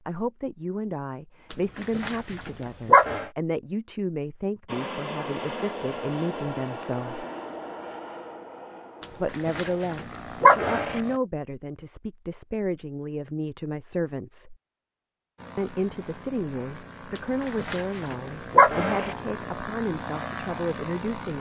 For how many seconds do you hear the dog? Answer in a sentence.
The dog can be heard for 5 seconds in total.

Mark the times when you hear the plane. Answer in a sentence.
The plane can be heard from 4.7 to 11.2 s and from 15.3 to 21.3 s.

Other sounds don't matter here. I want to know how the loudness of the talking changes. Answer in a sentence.
The loudness of the talking stays about the same.